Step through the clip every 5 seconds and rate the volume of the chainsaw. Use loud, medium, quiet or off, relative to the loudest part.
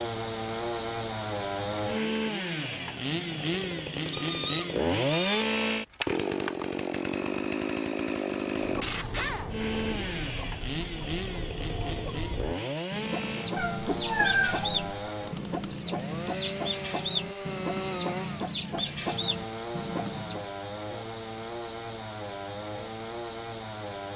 loud, loud, medium, medium, medium.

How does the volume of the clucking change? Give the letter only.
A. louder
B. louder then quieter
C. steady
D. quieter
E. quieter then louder
A.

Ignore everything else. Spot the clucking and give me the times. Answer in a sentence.
You can hear the clucking from 8.6 to 20.4 s.